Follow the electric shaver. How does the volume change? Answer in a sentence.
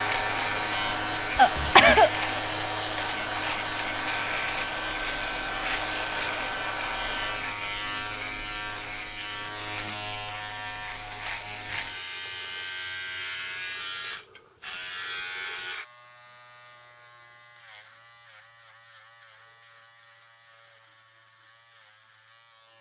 The volume of the electric shaver goes down.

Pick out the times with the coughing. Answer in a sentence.
The coughing can be heard from 1.4 to 2.1 s.